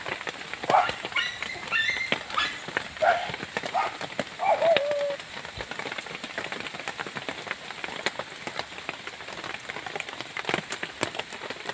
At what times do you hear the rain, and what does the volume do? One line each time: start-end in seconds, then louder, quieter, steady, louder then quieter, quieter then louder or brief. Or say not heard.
0.0-11.6 steady.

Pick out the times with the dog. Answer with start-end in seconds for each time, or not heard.
0.7-5.7.